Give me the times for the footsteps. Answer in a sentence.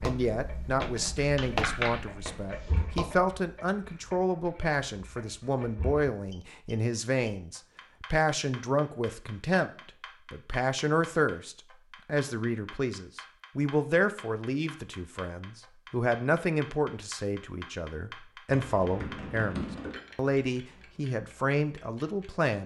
You can hear the footsteps from 0.0 to 3.4 s.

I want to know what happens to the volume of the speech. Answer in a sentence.
The loudness of the speech stays about the same.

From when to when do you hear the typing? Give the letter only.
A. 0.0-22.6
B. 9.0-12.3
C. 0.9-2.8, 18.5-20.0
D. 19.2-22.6
C.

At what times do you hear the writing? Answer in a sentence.
The writing can't be heard in this clip.